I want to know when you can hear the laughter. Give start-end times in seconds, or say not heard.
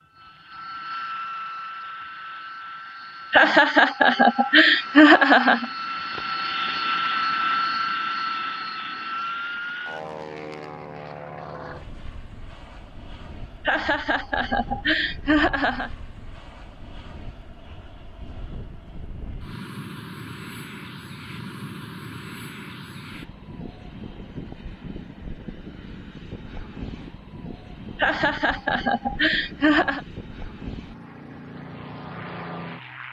3.3-5.7, 13.7-15.9, 27.9-30.0.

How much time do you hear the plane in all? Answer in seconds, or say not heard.
33 s.